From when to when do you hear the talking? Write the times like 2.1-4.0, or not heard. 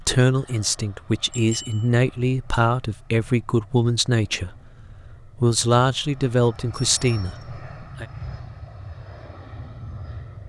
0.0-4.5, 5.3-8.1.